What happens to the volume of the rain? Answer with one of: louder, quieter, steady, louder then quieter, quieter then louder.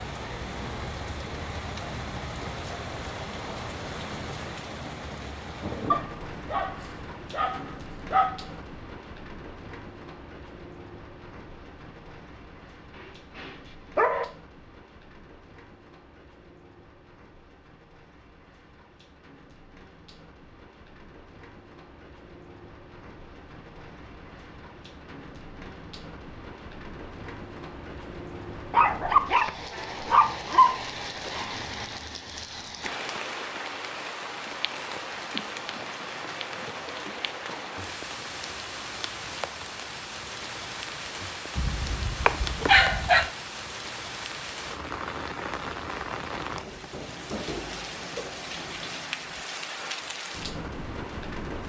quieter then louder.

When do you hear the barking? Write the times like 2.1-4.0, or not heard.
5.9-8.4, 12.9-14.2, 28.7-30.8, 41.5-43.3.